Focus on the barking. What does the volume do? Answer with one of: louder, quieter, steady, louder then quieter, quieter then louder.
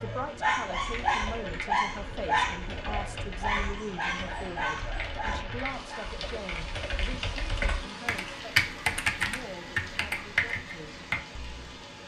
quieter.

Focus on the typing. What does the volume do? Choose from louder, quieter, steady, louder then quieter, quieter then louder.
louder.